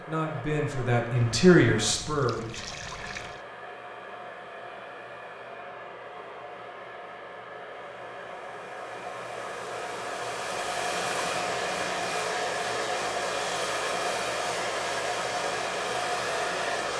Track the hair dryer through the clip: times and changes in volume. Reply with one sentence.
The hair dryer can be heard from 0.0 to 16.9 s, getting louder.